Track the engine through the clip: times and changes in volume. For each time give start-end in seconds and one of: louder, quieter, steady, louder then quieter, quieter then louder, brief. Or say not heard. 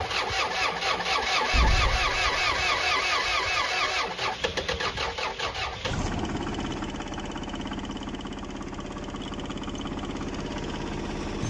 0.0-11.4 quieter.